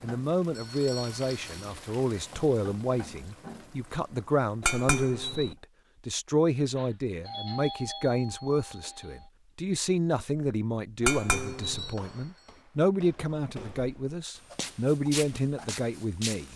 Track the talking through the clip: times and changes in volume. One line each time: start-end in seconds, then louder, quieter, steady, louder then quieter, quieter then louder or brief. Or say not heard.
0.0-16.5 steady.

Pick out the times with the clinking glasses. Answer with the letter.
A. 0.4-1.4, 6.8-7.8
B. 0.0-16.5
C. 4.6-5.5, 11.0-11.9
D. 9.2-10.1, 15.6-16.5
C.